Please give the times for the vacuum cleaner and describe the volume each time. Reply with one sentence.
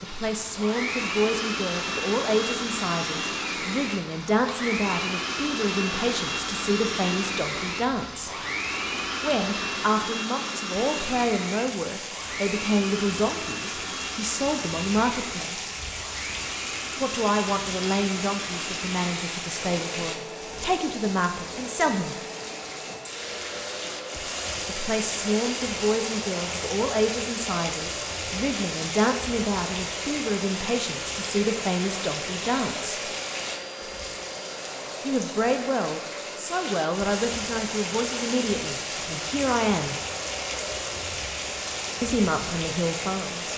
The vacuum cleaner can be heard from 0.0 to 43.5 s, getting quieter.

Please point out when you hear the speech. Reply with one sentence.
You can hear the speech from 0.0 to 8.3 s, from 9.2 to 15.7 s, from 17.0 to 22.1 s, from 24.6 to 33.1 s, from 35.0 to 40.0 s and from 42.0 to 43.5 s.